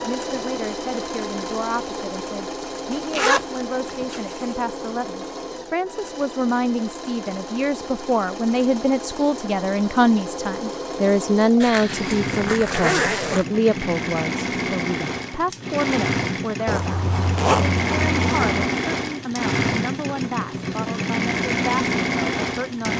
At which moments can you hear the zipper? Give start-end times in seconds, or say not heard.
2.9-4.5, 11.6-13.4, 16.6-18.7.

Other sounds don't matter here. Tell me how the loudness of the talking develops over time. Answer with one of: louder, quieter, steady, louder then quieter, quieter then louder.
louder then quieter.